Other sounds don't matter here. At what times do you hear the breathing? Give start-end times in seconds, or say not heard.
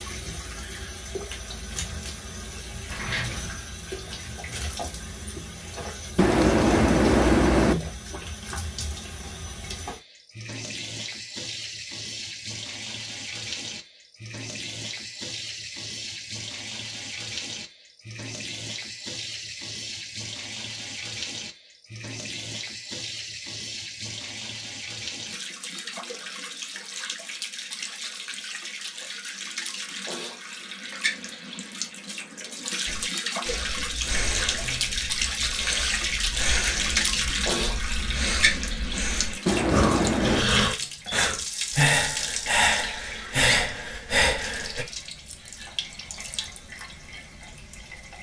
32.9-44.9.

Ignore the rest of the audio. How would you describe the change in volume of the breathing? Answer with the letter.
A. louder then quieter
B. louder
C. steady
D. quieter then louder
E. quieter
B.